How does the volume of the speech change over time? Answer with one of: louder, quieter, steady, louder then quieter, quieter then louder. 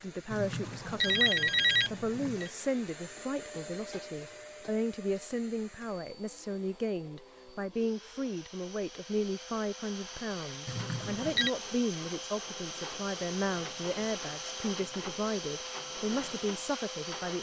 steady.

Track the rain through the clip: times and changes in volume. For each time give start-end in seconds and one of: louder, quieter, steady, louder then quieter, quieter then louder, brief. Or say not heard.
not heard.